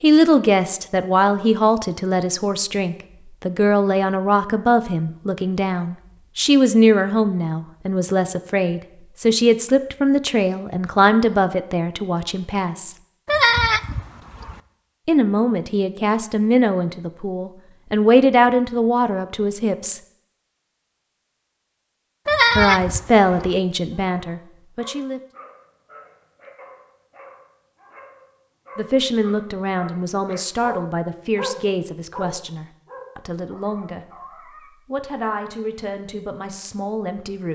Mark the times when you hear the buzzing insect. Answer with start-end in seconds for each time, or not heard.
not heard.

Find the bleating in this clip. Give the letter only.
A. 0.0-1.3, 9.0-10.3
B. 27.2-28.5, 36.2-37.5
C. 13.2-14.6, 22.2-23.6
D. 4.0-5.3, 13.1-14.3
C.